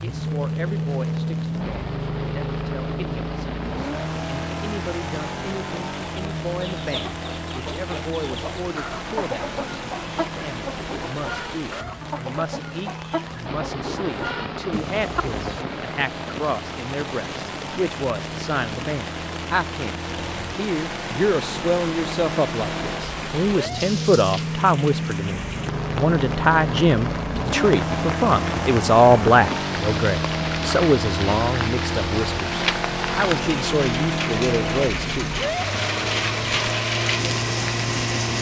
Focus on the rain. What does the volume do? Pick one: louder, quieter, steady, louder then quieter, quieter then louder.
louder.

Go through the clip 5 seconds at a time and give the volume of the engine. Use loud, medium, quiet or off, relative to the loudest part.
loud, medium, medium, medium, loud, loud, loud, loud.